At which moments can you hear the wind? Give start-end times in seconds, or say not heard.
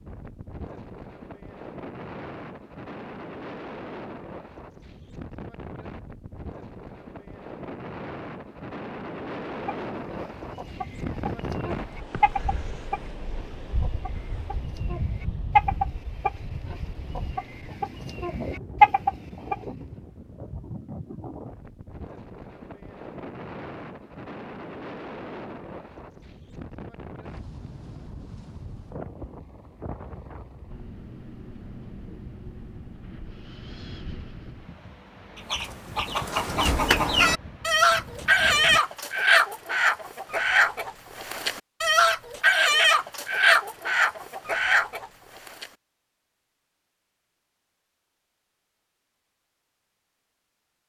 0.0-38.8.